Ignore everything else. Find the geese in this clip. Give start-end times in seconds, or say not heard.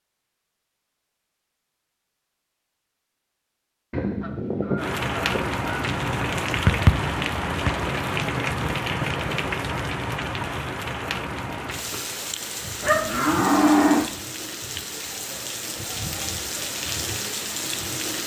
3.9-6.0.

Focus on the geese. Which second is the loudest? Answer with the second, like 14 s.
5 s.